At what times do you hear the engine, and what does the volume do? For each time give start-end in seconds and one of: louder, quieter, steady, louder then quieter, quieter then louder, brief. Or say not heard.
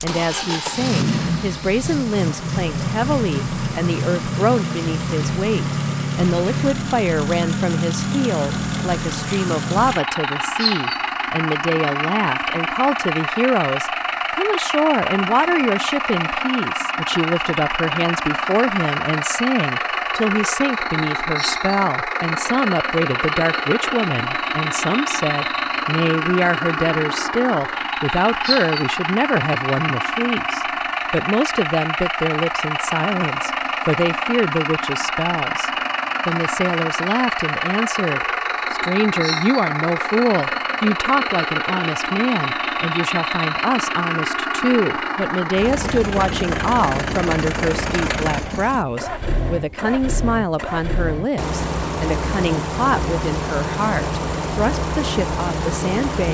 0.0-56.2 steady.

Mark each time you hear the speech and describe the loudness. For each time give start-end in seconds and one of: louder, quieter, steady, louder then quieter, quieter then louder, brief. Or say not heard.
0.0-56.2 steady.